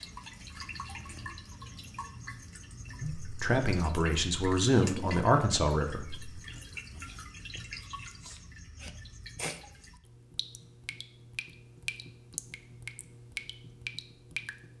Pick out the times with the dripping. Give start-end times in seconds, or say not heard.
0.0-14.7.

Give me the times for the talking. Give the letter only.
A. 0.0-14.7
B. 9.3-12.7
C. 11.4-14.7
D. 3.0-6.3
D.